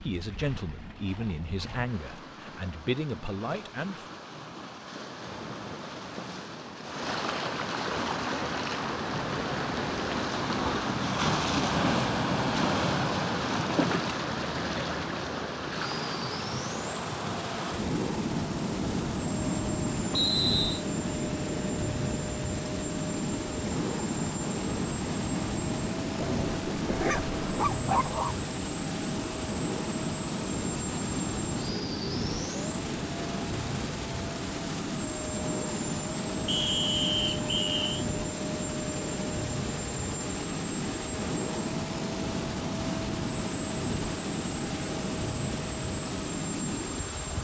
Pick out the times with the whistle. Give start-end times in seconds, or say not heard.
20.1-20.9, 36.5-38.0.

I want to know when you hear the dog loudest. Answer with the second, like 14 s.
28 s.